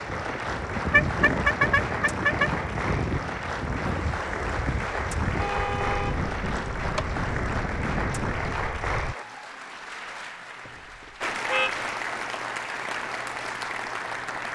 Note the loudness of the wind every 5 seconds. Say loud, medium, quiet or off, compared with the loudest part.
loud, loud, off.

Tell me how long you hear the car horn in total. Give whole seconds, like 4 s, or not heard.
5 s.